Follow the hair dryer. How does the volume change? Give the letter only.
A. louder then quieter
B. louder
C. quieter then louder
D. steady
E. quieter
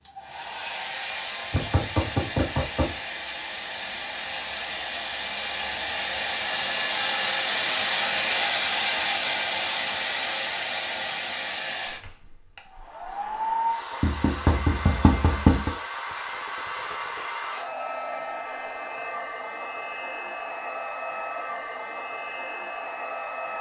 A.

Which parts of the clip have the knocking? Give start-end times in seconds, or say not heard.
1.5-3.0, 14.0-15.8.